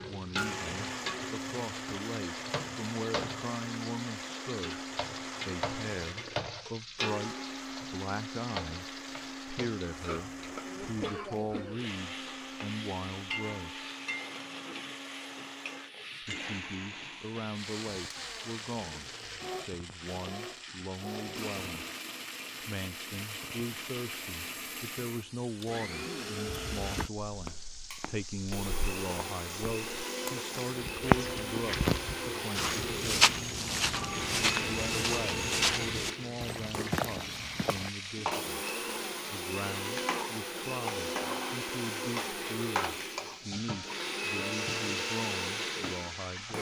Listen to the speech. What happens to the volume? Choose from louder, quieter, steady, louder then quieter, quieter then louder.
steady.